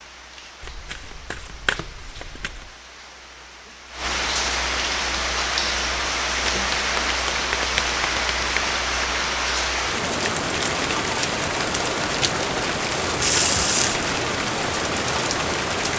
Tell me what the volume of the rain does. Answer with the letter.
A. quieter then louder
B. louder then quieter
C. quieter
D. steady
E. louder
E.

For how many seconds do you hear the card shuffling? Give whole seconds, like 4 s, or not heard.
5 s.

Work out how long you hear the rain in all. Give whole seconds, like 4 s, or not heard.
16 s.